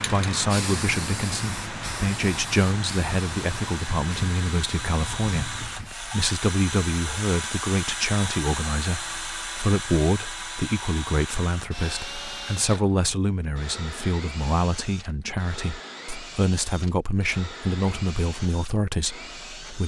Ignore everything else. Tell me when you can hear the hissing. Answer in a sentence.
The hissing can be heard from 0.0 to 6.1 s.